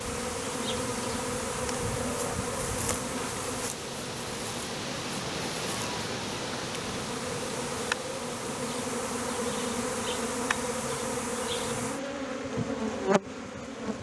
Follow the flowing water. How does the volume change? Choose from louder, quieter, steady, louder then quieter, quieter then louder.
louder then quieter.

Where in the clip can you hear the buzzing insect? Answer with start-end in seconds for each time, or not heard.
0.0-13.9.